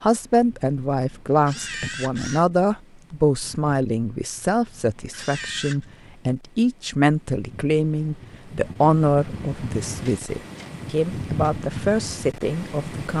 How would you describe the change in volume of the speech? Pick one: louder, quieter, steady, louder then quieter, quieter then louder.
steady.